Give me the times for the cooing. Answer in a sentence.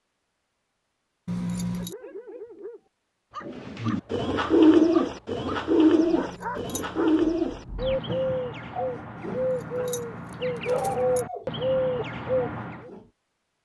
You can hear the cooing from 3.5 to 12.9 s.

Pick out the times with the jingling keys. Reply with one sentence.
You can hear the jingling keys from 1.2 to 1.9 s, from 6.1 to 7.1 s and from 9.4 to 11.2 s.